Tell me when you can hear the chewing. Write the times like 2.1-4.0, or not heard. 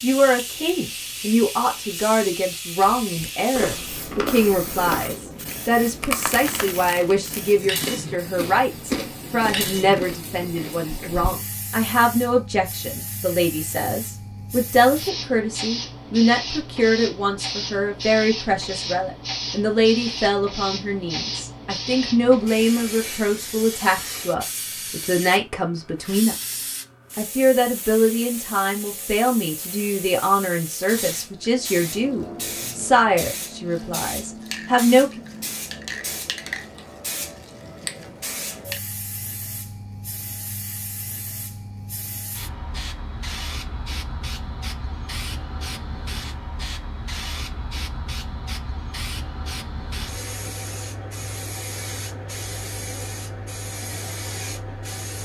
3.0-11.3.